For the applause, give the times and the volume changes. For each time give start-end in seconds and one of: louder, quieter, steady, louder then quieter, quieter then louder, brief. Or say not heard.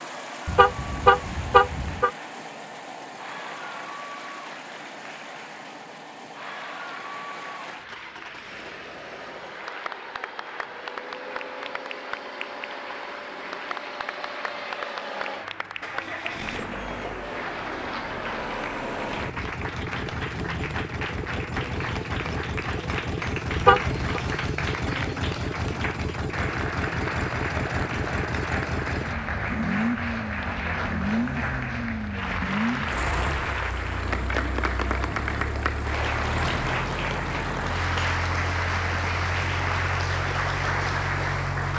0.0-41.7 louder.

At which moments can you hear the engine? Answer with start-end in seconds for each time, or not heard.
0.0-41.7.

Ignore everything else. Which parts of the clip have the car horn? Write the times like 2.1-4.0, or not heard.
0.5-2.1, 23.6-24.2.